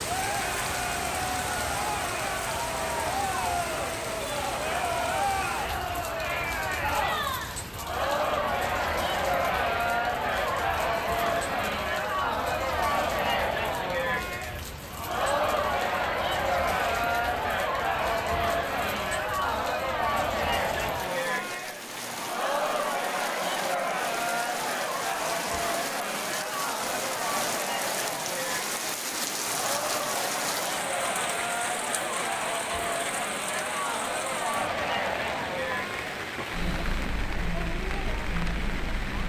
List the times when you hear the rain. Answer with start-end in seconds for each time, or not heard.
0.0-39.2.